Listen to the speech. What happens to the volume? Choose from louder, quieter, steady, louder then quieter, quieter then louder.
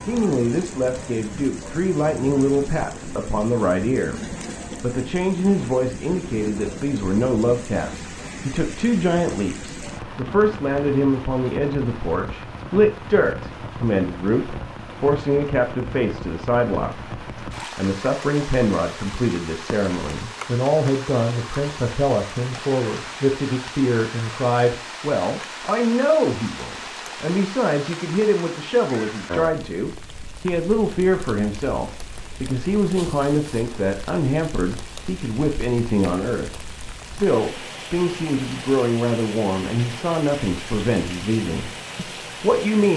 steady.